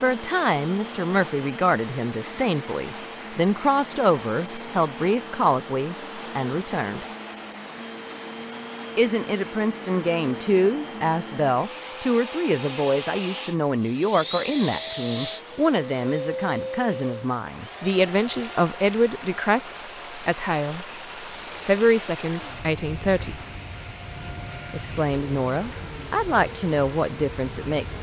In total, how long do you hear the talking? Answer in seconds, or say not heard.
24 s.